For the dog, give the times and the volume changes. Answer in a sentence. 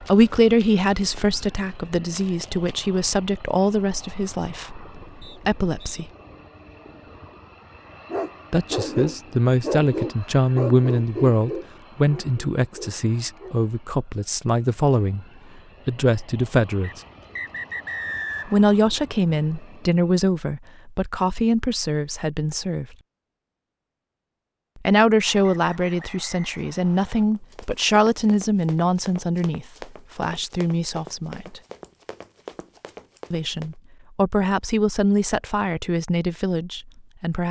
You can hear the dog from 8.1 to 13.6 s, getting quieter.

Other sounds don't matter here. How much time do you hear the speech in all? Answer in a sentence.
You can hear the speech for 29 seconds altogether.